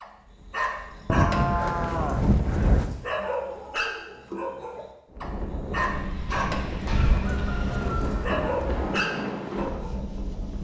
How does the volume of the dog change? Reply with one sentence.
The volume of the dog stays about the same.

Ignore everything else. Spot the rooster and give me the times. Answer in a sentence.
You can hear the rooster from 6.2 to 8.3 s.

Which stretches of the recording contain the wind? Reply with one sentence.
You can hear the wind from 5.1 to 10.5 s.